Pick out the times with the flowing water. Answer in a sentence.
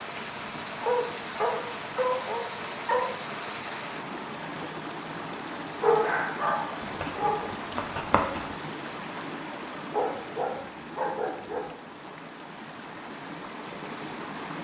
You can hear the flowing water from 0.0 to 14.5 s.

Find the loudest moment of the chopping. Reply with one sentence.
The loudest moment of the chopping is at 8 seconds.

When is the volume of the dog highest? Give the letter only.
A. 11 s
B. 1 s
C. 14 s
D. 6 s
D.